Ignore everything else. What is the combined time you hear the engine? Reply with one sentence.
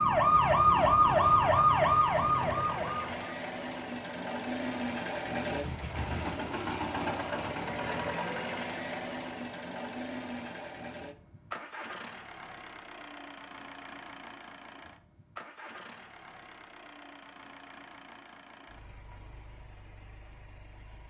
The engine can be heard for 21 seconds in total.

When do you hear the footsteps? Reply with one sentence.
The footsteps can't be heard in this clip.